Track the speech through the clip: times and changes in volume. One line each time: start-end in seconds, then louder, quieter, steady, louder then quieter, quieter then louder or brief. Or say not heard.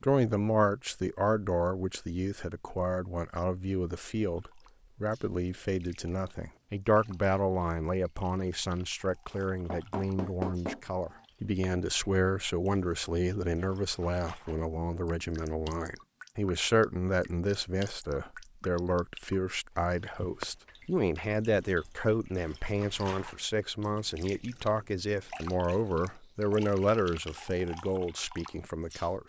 0.0-29.2 steady.